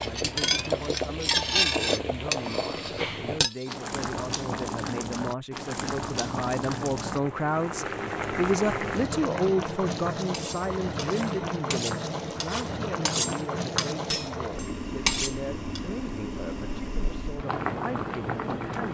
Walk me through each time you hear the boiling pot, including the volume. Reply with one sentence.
The boiling pot can be heard from 0.0 to 18.8 s, at a steady volume.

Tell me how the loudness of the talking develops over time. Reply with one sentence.
The loudness of the talking goes up, then down.